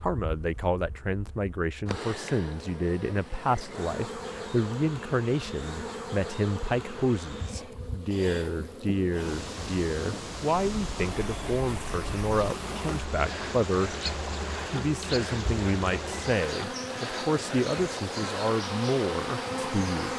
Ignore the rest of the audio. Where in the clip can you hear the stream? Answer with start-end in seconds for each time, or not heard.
9.1-20.1.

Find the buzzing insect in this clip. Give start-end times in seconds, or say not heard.
0.0-20.1.